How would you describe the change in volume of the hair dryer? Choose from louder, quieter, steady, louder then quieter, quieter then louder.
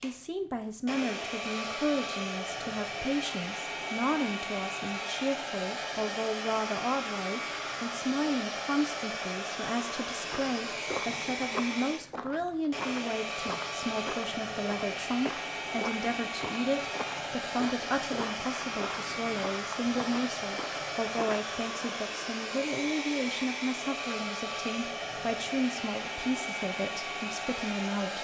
steady.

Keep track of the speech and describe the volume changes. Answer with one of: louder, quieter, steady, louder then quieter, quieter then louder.
steady.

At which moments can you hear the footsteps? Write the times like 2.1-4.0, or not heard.
10.1-21.6.